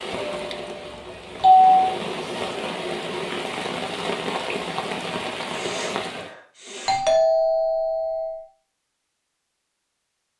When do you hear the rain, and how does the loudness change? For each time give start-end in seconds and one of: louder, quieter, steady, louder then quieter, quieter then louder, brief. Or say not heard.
0.0-6.3 louder.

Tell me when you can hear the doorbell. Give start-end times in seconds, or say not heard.
0.2-1.8, 6.8-8.4.